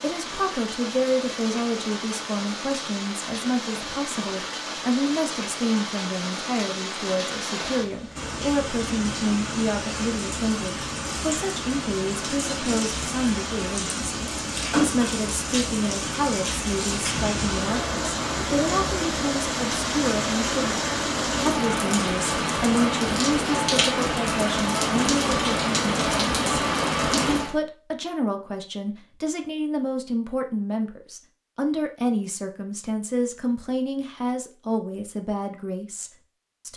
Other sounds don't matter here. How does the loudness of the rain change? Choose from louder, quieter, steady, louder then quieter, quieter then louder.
louder.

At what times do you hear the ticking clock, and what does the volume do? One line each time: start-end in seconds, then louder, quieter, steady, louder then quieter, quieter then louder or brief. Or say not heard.
not heard.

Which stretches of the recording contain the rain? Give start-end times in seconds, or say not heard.
0.0-27.6.